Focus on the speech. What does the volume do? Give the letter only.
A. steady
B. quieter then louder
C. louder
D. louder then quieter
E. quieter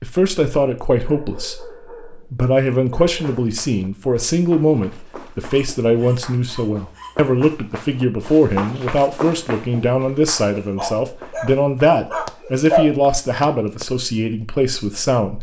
A.